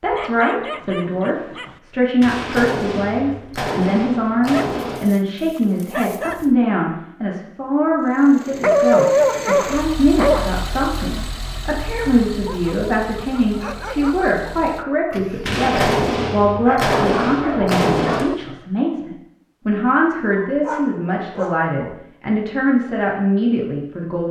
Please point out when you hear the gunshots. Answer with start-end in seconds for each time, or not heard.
2.2-5.0, 15.4-18.2.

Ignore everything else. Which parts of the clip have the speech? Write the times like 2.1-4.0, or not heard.
0.0-24.2.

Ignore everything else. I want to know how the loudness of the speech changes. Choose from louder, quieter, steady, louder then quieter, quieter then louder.
steady.